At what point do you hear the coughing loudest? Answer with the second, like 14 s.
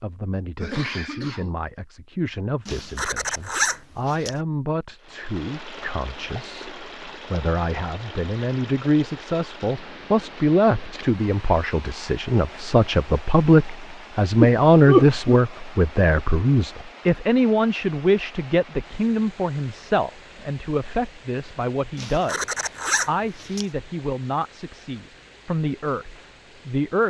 15 s.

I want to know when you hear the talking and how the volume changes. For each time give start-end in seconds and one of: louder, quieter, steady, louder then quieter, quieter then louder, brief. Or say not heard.
0.0-27.0 louder then quieter.